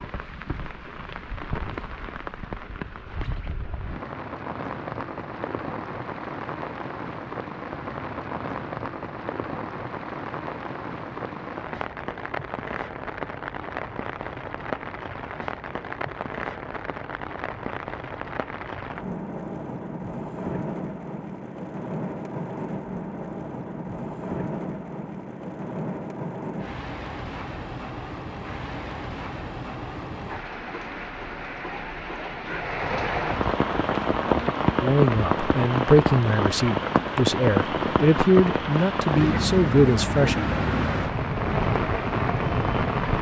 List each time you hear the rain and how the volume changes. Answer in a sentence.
You can hear the rain from 0.0 to 43.1 s, getting louder.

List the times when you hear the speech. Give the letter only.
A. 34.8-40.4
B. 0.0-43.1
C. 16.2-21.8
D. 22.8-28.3
A.